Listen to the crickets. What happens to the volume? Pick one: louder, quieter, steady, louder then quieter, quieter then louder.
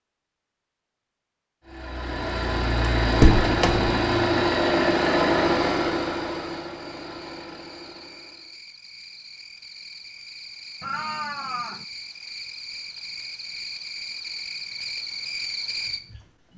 louder.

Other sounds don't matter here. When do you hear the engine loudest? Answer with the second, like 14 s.
5 s.